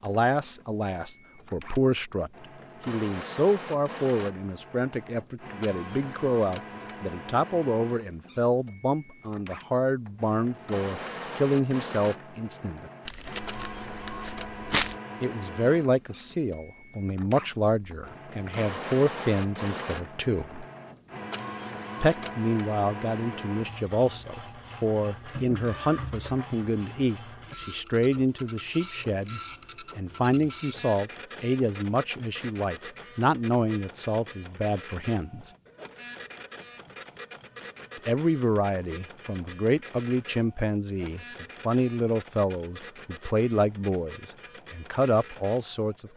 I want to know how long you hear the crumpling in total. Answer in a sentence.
The crumpling can be heard for 2 seconds in total.